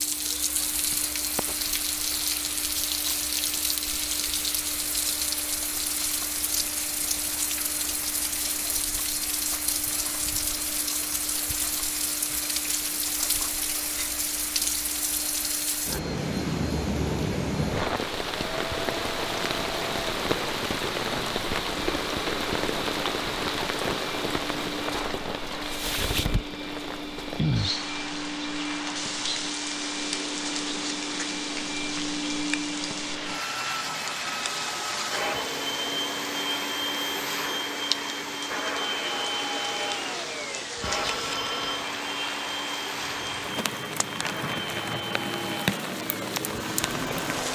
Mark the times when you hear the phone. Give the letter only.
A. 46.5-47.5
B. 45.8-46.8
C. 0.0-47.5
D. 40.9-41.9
D.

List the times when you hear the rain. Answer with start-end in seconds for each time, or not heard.
0.0-47.5.